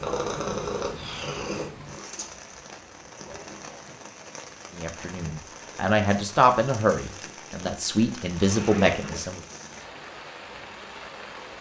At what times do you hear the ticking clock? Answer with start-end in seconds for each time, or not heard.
not heard.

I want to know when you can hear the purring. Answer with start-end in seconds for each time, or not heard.
0.0-1.7.